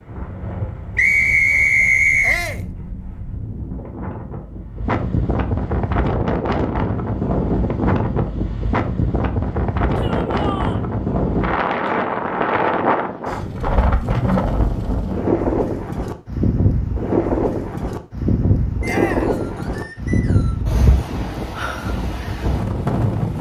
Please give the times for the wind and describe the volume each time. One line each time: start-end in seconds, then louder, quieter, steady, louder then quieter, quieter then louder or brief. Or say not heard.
0.0-23.3 louder.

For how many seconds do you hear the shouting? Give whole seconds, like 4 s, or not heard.
2 s.